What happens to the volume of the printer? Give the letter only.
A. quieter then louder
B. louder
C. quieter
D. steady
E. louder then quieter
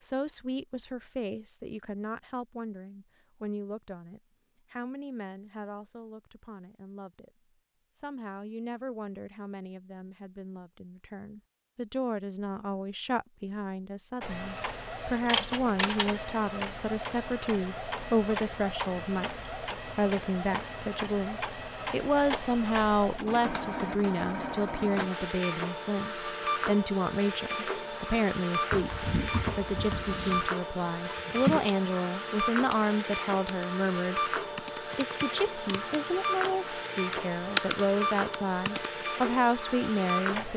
D.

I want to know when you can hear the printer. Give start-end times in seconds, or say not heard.
14.2-40.5.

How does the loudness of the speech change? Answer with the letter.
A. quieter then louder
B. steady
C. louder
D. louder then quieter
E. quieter
C.